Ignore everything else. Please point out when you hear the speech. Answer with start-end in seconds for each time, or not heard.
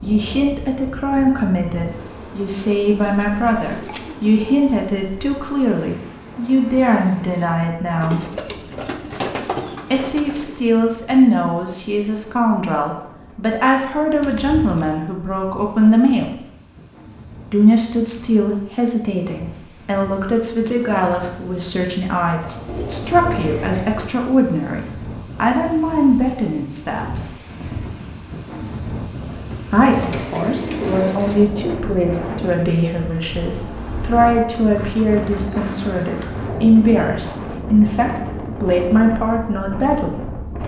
0.0-8.2, 9.9-16.4, 17.5-27.3, 29.7-40.1.